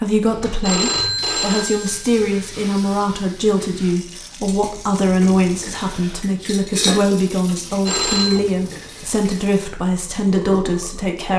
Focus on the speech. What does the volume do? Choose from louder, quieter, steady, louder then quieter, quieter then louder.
steady.